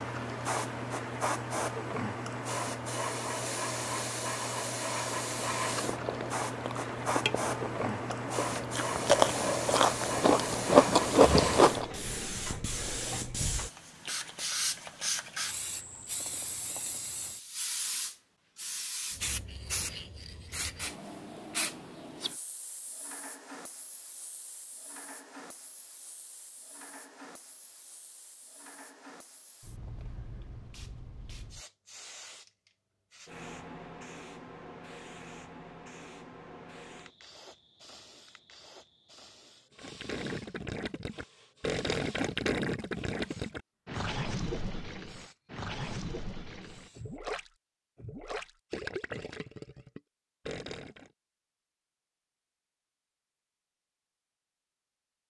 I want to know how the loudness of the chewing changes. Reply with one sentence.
The loudness of the chewing goes up.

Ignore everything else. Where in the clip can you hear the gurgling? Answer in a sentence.
The gurgling can be heard from 39.8 to 51.1 s.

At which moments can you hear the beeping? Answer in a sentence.
The beeping can't be heard in this clip.